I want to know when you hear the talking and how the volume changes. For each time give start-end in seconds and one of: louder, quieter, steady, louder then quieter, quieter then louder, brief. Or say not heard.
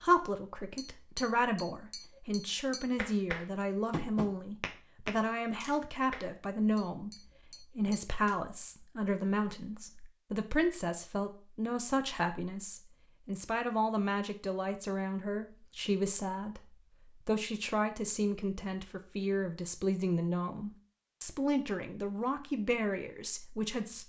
0.0-24.0 steady.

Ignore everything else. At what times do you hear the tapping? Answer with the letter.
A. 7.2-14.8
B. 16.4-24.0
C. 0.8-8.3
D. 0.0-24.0
C.